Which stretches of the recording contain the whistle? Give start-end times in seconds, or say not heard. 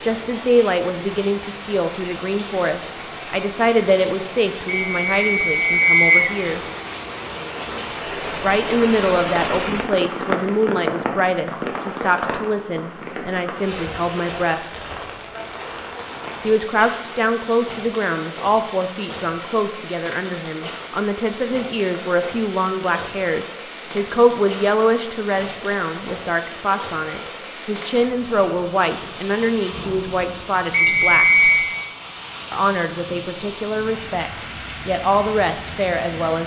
4.7-6.3, 30.7-31.8.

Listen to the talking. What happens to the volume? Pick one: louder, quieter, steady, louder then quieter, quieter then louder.
steady.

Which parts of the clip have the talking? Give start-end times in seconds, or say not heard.
0.0-6.6, 8.4-14.6, 16.4-31.2, 32.5-36.4.